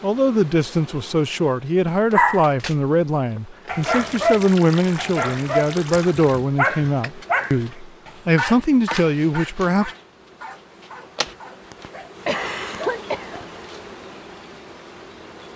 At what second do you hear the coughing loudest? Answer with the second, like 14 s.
13 s.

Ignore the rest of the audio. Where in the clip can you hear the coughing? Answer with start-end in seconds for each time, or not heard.
11.2-13.7.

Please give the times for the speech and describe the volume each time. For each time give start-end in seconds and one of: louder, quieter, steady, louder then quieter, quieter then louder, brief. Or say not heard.
0.0-9.9 steady.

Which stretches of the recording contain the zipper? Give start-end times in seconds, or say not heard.
not heard.